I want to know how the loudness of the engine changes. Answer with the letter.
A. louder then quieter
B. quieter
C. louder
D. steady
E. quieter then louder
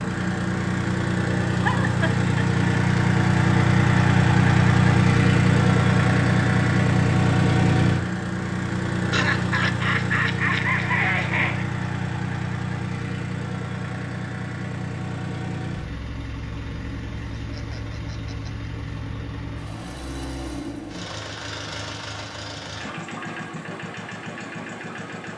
B.